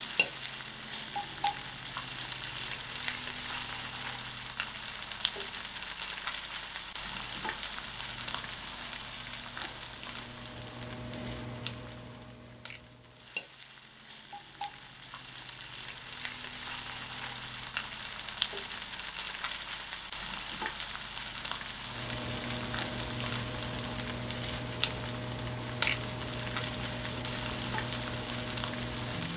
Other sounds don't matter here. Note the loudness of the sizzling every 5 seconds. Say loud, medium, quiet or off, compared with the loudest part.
loud, loud, medium, loud, loud, loud.